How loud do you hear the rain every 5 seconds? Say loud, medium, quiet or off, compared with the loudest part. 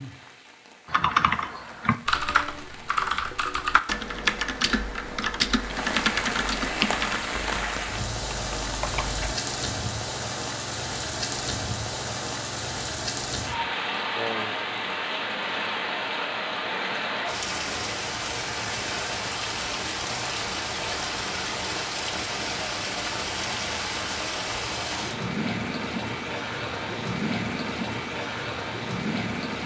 quiet, loud, loud, loud, loud, loud.